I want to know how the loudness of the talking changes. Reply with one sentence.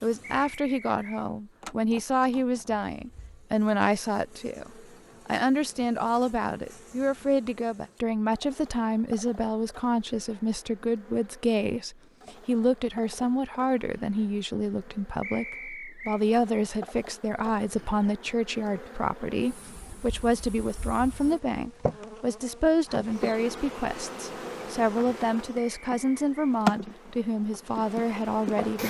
The volume of the talking stays about the same.